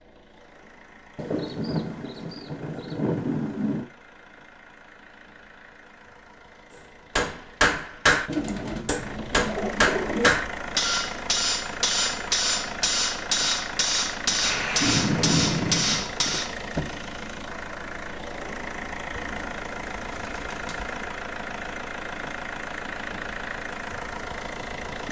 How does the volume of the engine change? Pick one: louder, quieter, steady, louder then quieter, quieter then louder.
louder.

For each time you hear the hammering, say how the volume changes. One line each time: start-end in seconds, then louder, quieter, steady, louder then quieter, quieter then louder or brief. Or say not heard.
7.2-16.6 steady.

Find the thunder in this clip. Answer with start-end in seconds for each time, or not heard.
1.1-3.9, 14.4-16.1.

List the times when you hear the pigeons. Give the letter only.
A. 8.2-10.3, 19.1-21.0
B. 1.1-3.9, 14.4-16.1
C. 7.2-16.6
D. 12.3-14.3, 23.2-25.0
A.